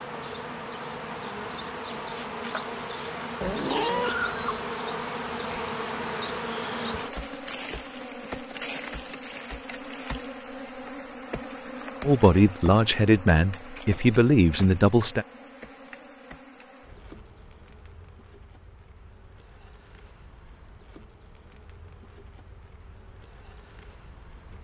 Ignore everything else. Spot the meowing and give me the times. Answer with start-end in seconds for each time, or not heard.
3.4-4.7.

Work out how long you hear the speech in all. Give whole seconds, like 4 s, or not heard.
3 s.